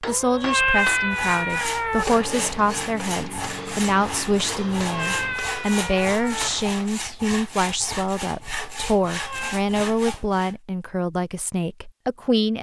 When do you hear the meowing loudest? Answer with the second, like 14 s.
1 s.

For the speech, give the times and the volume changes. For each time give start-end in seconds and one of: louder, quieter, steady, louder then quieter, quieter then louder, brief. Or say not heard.
0.0-12.5 steady.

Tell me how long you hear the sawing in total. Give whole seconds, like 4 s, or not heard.
10 s.